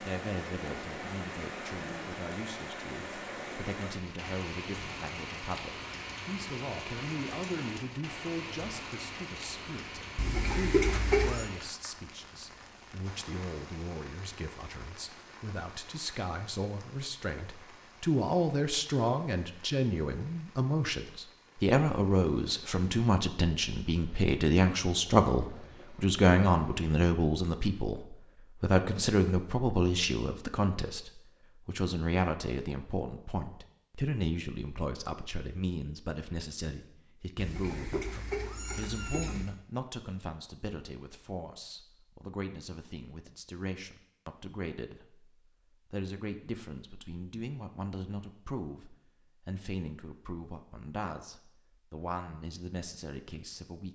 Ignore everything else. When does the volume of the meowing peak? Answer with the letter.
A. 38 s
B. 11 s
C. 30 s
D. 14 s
B.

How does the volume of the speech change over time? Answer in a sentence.
The loudness of the speech goes up, then down.